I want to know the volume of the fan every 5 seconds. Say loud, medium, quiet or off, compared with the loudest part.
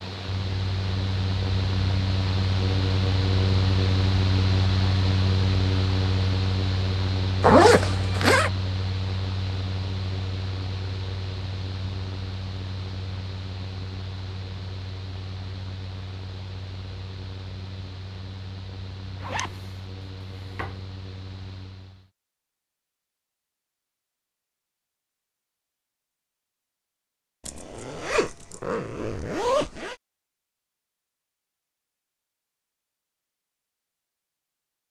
loud, loud, medium, quiet, quiet, off, off.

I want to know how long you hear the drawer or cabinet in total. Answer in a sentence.
You can hear the drawer or cabinet for 2 seconds altogether.